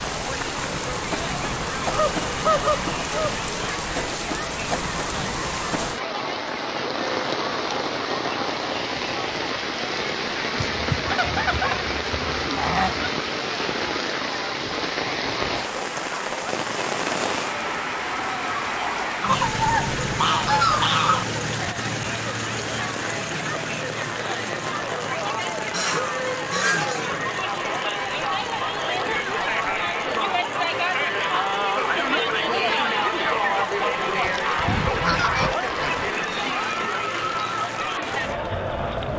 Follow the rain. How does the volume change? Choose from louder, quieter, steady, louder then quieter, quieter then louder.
quieter.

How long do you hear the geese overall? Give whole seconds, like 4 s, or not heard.
10 s.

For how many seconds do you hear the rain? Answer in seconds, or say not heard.
39 s.